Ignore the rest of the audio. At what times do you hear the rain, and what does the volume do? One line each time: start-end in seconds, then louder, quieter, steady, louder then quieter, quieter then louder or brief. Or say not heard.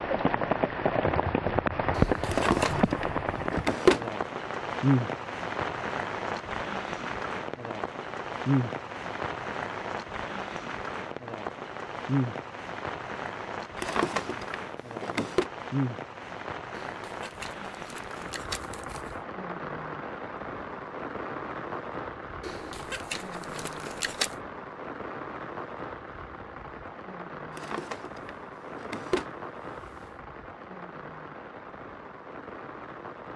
0.0-33.3 quieter.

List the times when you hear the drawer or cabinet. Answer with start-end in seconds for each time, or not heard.
2.3-4.0, 13.8-15.4, 27.6-29.3.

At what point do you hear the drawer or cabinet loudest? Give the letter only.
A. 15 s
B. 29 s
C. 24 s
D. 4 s
D.